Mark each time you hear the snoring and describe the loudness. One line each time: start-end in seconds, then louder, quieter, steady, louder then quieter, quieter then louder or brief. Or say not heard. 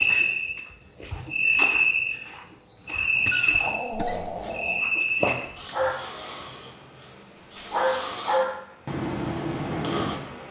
3.1-10.2 steady.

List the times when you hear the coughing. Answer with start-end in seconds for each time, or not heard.
3.2-5.1.